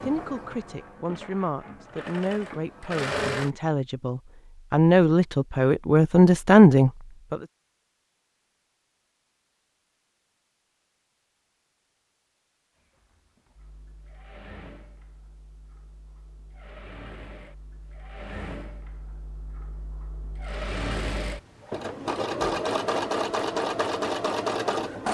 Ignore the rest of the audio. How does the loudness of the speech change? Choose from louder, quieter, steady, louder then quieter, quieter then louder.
louder.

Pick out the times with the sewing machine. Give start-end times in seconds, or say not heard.
0.0-3.5, 12.8-25.0.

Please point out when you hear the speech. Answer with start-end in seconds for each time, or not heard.
0.0-7.4.